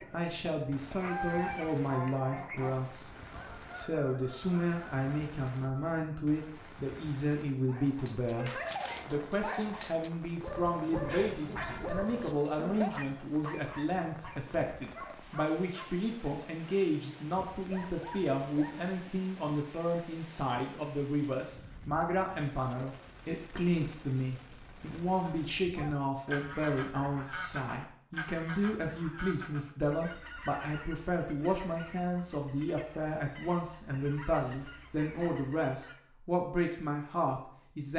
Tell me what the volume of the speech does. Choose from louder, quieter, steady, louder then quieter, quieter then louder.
steady.